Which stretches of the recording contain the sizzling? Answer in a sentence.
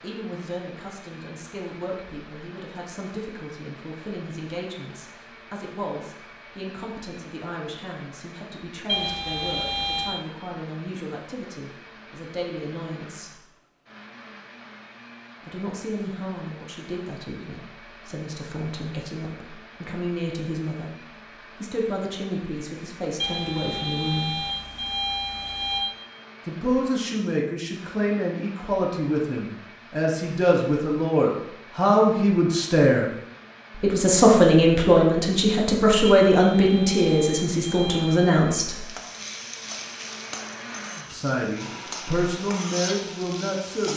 The sizzling can be heard from 38.7 to 43.9 s.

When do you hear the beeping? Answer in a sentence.
The beeping can be heard from 8.8 to 10.2 s, from 23.2 to 25.9 s and from 36.0 to 38.5 s.